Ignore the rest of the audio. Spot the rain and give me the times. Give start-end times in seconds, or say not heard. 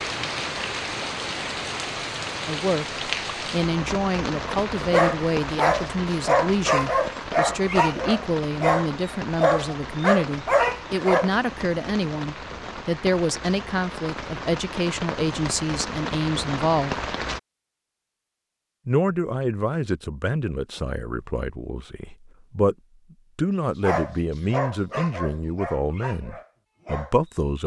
0.0-17.4.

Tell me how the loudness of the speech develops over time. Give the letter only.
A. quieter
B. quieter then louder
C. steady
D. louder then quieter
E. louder
C.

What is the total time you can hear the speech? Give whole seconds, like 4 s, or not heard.
23 s.